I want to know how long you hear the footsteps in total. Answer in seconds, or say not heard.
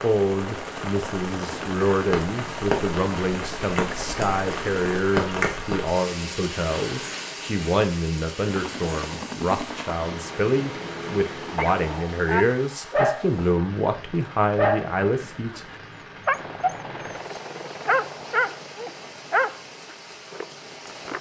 not heard.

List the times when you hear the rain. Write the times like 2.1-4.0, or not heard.
0.0-21.1.